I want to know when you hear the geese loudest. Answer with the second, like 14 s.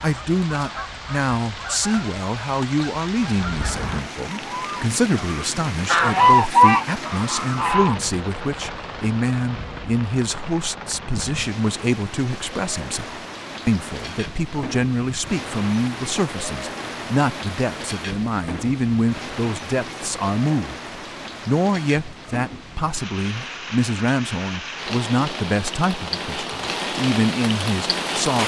6 s.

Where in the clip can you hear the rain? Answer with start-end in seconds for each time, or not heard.
0.0-28.4.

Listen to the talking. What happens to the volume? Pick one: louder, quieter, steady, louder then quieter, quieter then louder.
steady.